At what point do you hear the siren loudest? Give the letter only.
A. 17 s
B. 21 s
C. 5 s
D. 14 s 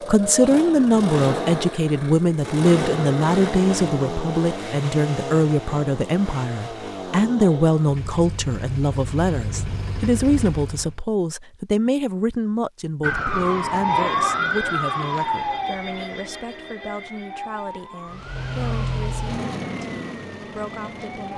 D.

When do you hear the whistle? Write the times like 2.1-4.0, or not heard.
not heard.